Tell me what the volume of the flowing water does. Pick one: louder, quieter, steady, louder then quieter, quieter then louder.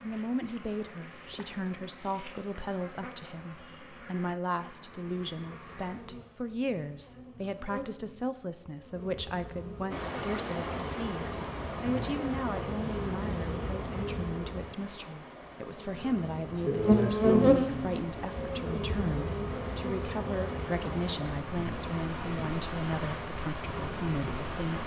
quieter then louder.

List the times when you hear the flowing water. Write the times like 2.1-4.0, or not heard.
9.9-24.8.